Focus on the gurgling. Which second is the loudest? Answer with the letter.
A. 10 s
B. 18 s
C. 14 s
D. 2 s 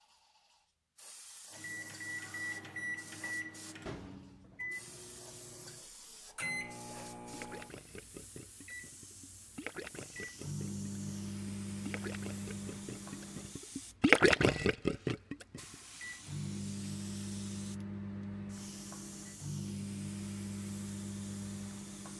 C.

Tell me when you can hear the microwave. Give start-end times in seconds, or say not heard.
1.5-22.1.